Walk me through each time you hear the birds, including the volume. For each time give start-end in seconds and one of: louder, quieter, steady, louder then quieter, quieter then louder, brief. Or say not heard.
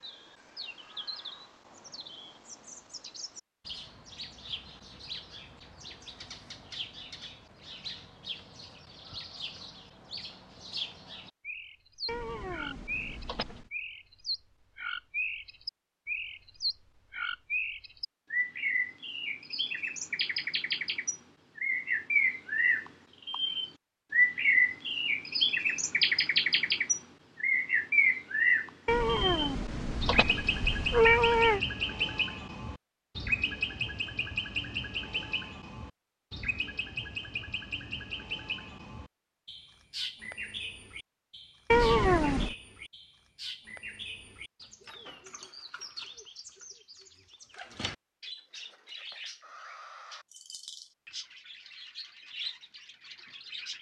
0.0-53.7 louder then quieter.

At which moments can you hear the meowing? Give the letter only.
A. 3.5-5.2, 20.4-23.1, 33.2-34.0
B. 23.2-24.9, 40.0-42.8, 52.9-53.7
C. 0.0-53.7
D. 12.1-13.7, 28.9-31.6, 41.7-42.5
D.